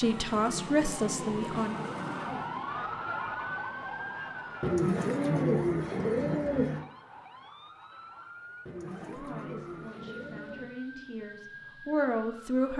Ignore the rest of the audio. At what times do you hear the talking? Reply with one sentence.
You can hear the talking from 0.0 to 1.8 s and from 8.9 to 12.7 s.